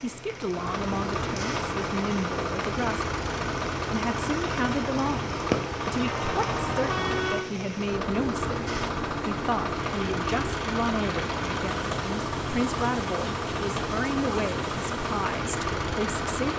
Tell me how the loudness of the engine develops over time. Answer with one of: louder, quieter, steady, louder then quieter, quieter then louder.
steady.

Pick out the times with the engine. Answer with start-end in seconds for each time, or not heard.
0.0-16.5.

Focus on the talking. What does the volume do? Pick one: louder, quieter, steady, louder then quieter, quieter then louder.
steady.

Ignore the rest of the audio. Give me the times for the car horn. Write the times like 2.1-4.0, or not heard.
6.0-7.5.